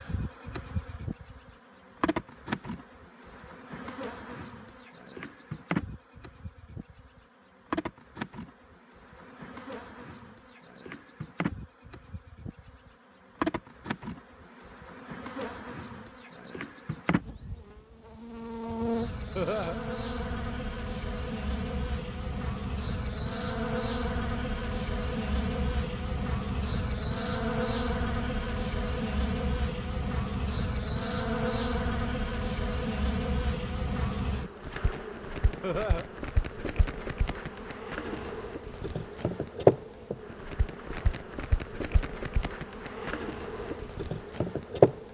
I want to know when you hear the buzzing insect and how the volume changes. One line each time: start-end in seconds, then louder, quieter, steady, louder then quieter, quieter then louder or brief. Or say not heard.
0.0-45.0 louder.